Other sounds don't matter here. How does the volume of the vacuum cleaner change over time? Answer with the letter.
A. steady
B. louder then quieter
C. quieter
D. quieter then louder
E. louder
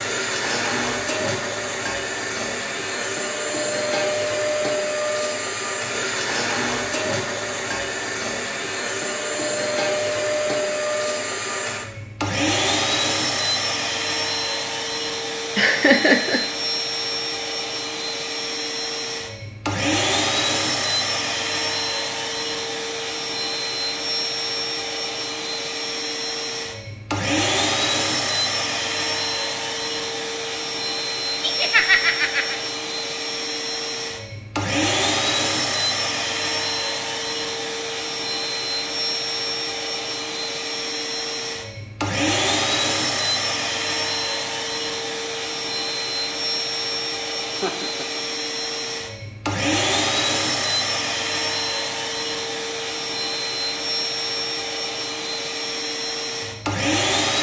A.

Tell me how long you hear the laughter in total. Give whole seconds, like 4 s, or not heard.
3 s.